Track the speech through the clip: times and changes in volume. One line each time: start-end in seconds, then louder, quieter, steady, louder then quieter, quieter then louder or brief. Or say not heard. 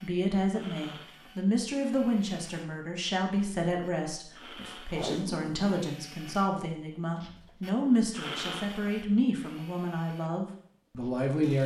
0.0-11.6 steady.